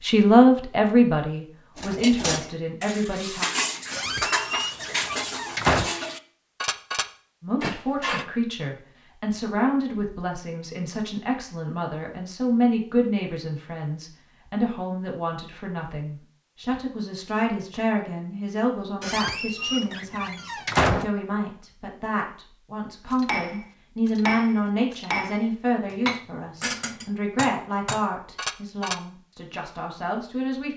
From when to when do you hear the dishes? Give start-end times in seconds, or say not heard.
1.8-8.2, 23.1-29.0.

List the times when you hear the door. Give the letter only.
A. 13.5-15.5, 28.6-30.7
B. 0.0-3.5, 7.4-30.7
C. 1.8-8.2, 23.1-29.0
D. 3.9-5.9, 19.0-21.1
D.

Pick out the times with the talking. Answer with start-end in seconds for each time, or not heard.
0.0-3.5, 7.4-30.7.